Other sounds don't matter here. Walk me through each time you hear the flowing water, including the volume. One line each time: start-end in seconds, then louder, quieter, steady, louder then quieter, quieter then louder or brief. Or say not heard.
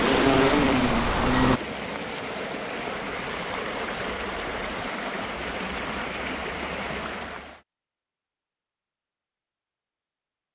0.0-7.6 steady.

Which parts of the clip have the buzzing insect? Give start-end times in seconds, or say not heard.
0.0-1.6.